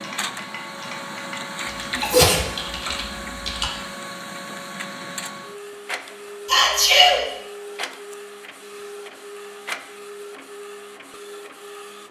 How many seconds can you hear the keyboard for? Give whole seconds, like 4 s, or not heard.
4 s.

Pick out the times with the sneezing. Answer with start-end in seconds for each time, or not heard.
1.9-2.5, 6.5-7.2.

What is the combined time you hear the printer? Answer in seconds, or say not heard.
12 s.